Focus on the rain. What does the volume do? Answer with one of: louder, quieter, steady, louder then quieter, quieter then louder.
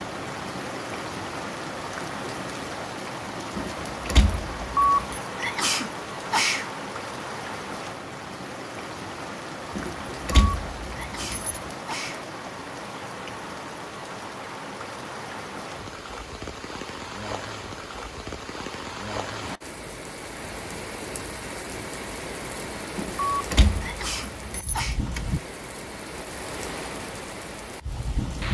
steady.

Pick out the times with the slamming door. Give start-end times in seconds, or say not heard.
not heard.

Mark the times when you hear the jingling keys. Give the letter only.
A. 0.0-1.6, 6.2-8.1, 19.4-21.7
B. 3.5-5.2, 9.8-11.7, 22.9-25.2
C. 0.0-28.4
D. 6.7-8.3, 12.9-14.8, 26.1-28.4
B.